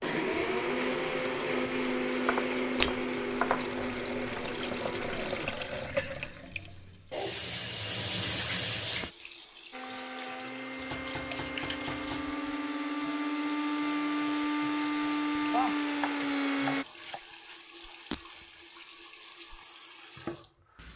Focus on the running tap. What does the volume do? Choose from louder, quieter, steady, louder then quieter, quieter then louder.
louder then quieter.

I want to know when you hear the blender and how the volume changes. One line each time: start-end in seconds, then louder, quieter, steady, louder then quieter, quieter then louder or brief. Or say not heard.
0.0-5.5 quieter
9.7-16.9 louder.